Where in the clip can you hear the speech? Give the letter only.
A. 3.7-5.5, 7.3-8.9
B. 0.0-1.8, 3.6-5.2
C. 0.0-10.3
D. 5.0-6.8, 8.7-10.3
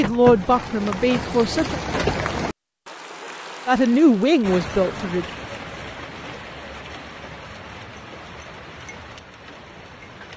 B.